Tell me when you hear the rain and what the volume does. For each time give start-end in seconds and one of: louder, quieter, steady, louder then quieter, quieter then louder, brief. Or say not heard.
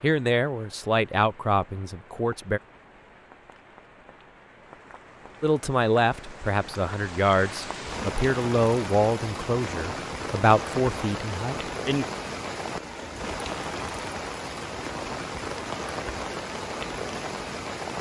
0.0-17.9 louder.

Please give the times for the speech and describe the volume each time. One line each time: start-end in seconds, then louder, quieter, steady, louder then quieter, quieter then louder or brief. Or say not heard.
0.0-2.6 brief
5.4-12.1 steady.